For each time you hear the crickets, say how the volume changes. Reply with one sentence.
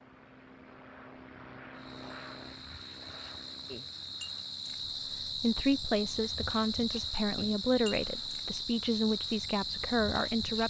The crickets can be heard from 1.7 to 10.6 s, getting louder.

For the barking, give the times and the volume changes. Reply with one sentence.
You can't hear the barking here.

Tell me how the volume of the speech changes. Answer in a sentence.
The volume of the speech stays about the same.